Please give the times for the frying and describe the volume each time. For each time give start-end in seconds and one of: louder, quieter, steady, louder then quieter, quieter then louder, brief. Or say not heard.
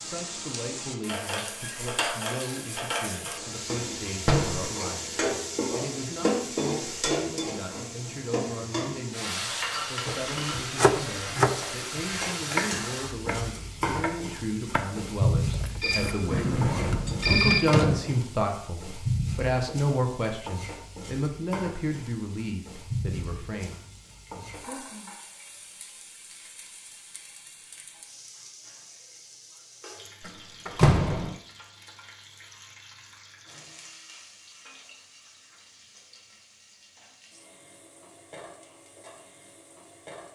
0.0-40.3 quieter.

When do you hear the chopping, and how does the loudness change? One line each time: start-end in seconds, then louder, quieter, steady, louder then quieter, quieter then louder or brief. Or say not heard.
10.1-17.9 quieter then louder.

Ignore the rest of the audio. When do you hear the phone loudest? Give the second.
17 s.